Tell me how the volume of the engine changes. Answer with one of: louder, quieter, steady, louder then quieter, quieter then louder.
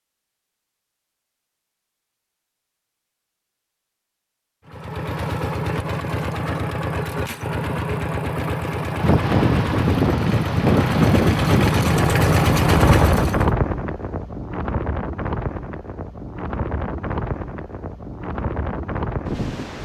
louder.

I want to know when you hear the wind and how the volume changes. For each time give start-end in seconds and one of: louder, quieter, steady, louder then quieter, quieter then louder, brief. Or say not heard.
9.0-19.7 quieter.